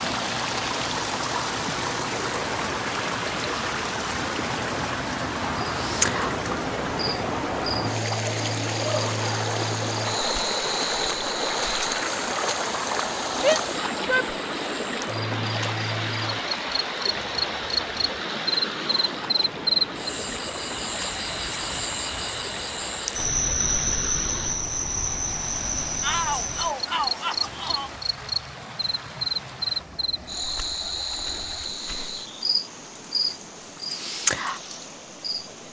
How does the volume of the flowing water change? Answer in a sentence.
The loudness of the flowing water goes down.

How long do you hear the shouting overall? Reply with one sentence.
The shouting can be heard for 3 seconds in total.